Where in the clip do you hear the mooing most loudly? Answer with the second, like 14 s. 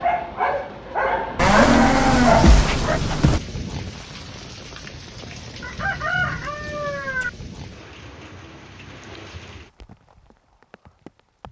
2 s.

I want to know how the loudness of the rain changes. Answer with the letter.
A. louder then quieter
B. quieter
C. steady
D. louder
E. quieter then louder
B.